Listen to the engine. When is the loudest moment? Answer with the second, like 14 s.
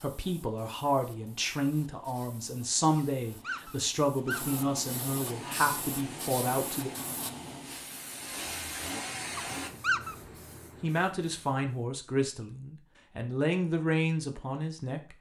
9 s.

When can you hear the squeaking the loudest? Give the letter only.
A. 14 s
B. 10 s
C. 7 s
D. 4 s
B.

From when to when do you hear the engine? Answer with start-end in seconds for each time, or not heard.
5.2-9.7.